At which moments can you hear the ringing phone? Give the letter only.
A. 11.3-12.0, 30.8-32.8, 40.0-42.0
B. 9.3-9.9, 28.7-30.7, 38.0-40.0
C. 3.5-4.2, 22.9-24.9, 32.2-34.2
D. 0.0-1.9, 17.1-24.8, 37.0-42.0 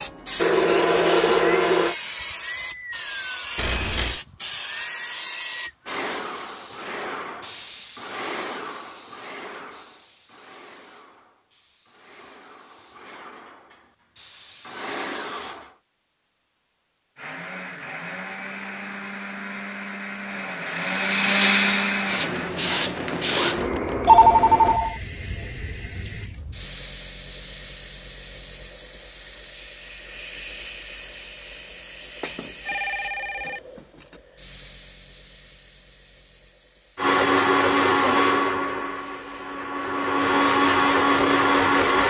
C.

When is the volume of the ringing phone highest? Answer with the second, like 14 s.
24 s.